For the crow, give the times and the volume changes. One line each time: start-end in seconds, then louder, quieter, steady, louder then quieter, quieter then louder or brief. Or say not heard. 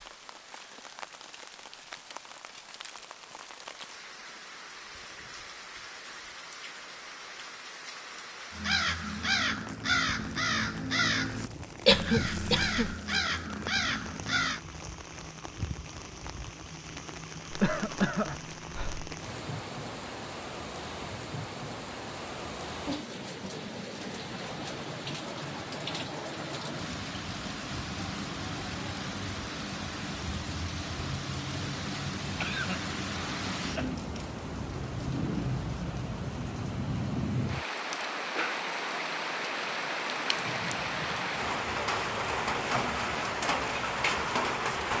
8.5-14.6 steady.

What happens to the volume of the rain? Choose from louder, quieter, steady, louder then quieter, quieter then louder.
louder.